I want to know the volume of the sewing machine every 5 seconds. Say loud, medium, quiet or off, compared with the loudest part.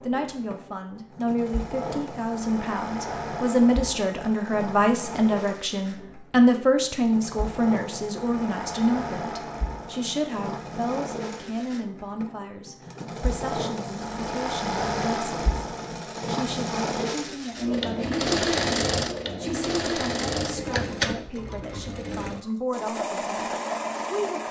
medium, medium, medium, loud, loud.